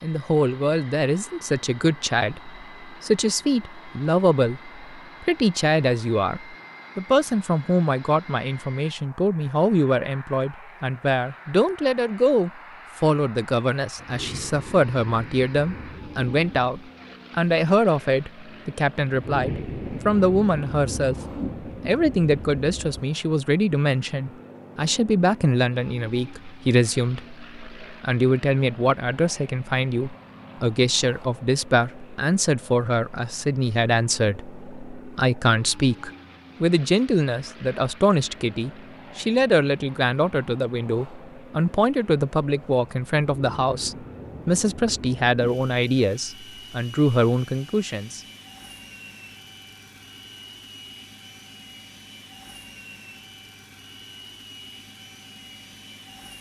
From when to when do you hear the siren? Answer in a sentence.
The siren can't be heard in this clip.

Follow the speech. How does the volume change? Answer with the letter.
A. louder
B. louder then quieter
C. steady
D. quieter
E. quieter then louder
C.